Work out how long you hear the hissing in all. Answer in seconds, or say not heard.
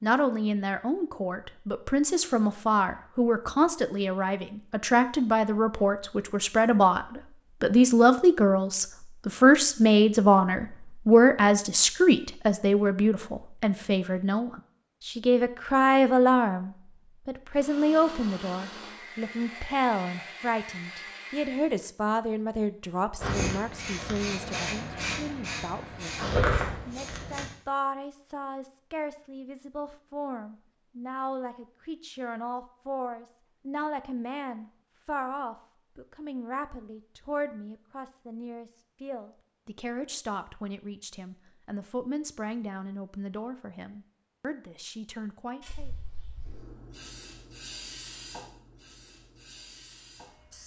9 s.